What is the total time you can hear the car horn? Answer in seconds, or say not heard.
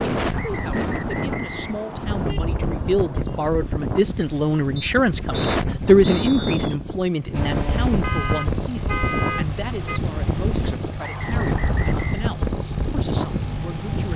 4 s.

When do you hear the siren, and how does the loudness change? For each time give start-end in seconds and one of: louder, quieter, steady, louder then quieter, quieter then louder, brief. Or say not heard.
not heard.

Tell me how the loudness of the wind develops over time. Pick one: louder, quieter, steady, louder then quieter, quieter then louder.
steady.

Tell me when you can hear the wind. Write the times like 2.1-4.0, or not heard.
0.0-14.1.